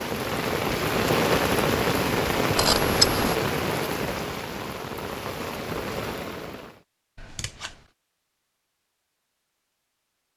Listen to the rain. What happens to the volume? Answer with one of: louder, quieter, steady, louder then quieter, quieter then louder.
quieter.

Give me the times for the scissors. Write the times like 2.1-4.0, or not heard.
2.5-3.4, 7.2-7.8.